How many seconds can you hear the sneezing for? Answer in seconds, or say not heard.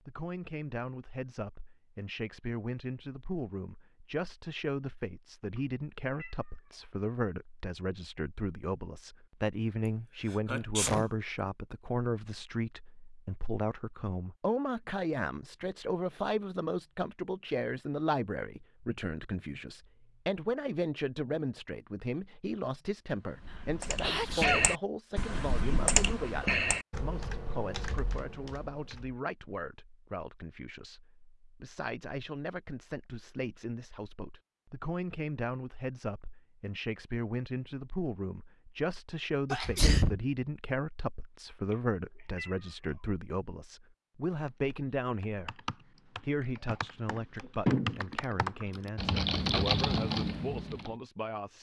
3 s.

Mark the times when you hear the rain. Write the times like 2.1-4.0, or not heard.
not heard.